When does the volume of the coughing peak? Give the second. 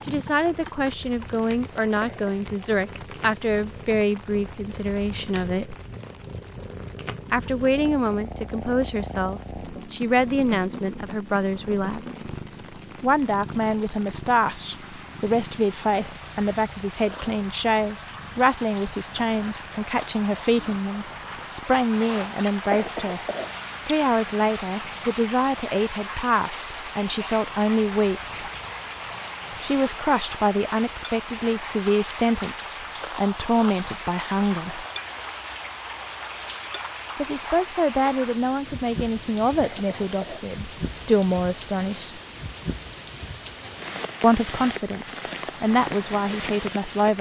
23 s.